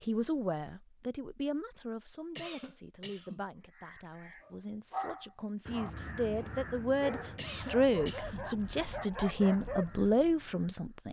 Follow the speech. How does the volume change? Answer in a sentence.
The loudness of the speech goes down, then up.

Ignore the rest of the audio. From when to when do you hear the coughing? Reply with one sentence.
You can hear the coughing from 2.4 to 3.5 s and from 7.3 to 8.5 s.